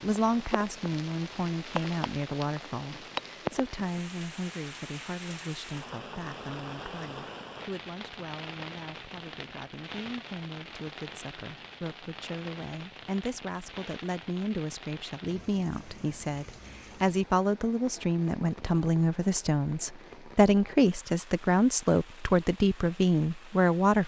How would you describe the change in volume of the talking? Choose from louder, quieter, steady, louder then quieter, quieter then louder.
quieter then louder.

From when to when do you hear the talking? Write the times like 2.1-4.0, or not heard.
0.0-24.0.